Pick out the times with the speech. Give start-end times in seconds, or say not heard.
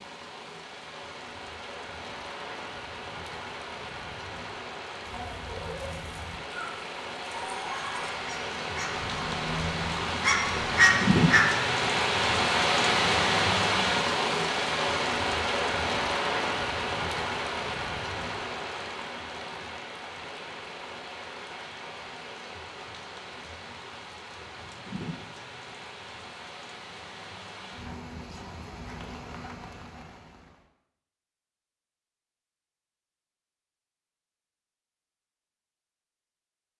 not heard.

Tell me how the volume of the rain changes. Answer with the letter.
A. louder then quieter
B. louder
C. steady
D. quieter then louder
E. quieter
A.